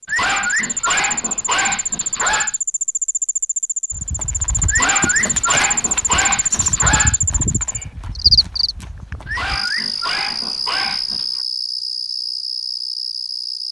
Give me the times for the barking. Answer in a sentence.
The barking can be heard from 0.1 to 2.5 s, from 4.7 to 7.2 s and from 9.2 to 11.4 s.